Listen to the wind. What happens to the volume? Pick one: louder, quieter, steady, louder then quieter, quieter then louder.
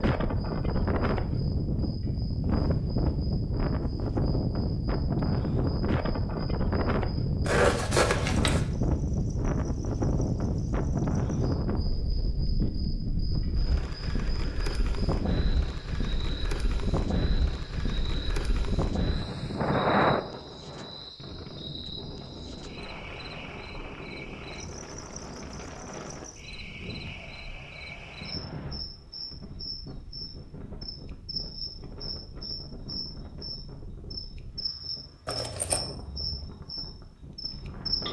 quieter.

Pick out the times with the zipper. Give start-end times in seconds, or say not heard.
7.5-8.7, 35.2-35.9.